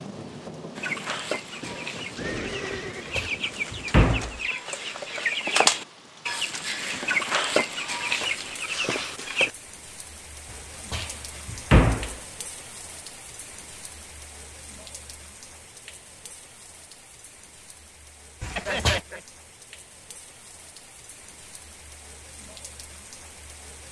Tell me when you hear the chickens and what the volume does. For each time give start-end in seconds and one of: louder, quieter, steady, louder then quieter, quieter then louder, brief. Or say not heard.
0.8-9.5 louder.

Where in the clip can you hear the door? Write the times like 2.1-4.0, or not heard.
3.1-4.4, 10.9-12.2, 18.4-19.0.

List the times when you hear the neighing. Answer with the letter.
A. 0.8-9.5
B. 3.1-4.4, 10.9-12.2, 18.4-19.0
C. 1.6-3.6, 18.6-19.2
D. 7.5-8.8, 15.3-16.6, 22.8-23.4
C.